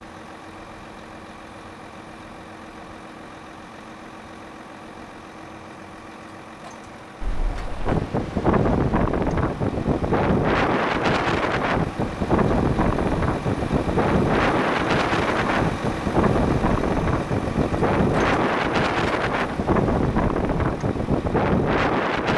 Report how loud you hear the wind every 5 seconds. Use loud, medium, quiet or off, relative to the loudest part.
off, loud, loud, loud, loud.